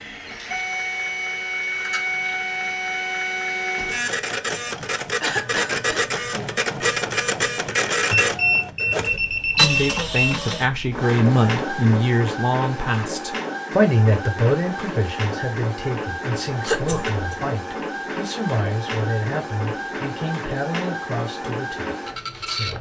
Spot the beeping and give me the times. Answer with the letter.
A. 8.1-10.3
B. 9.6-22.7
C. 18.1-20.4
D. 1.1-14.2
A.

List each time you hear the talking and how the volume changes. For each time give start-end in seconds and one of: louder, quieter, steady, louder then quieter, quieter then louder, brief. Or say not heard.
9.6-22.7 quieter.